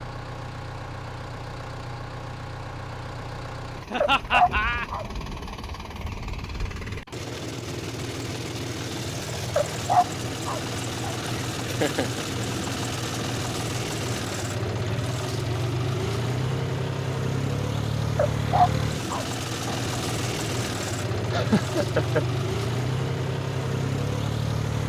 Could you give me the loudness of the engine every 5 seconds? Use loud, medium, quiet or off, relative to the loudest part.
medium, medium, loud, loud, loud.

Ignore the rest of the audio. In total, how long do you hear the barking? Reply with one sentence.
You can hear the barking for 4 seconds altogether.